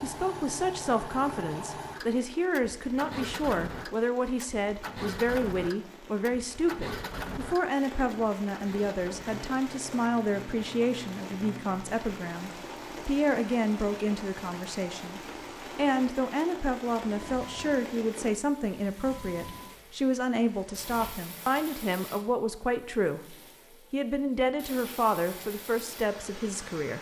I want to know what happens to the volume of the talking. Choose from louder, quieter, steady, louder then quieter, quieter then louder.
steady.